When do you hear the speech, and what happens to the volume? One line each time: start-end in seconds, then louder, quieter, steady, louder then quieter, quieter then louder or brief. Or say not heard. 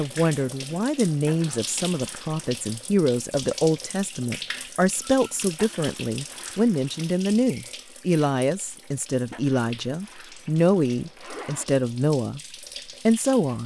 0.0-12.4 steady
13.1-13.6 brief.